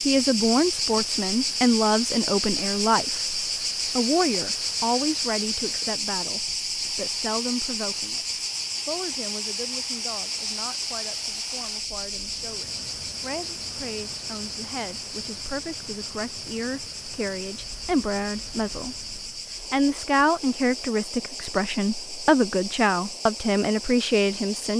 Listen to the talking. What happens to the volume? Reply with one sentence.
The volume of the talking goes down, then up.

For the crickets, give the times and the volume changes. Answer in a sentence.
You can hear the crickets from 0.0 to 24.7 s, getting quieter.